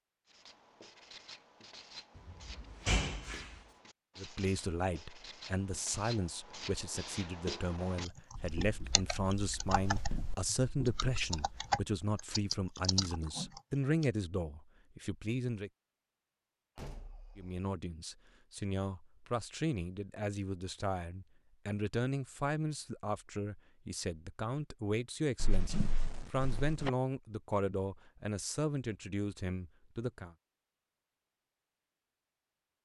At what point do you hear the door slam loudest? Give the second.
3 s.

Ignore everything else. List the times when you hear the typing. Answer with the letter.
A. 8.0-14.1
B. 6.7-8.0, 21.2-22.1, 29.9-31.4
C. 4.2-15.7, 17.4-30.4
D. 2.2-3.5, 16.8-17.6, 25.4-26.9
A.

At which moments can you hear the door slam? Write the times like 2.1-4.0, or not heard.
2.2-3.5, 16.8-17.6, 25.4-26.9.